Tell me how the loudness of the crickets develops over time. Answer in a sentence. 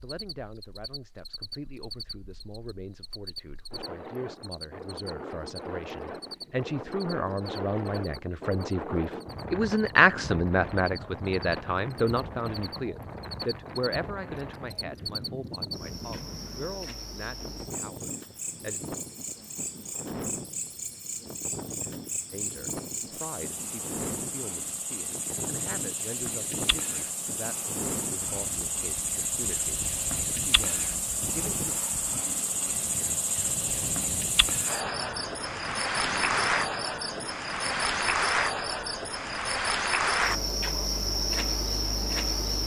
The volume of the crickets goes up.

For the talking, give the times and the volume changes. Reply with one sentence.
The talking can be heard from 0.0 to 18.8 s, getting louder then quieter; and from 22.3 to 31.8 s, at a steady volume.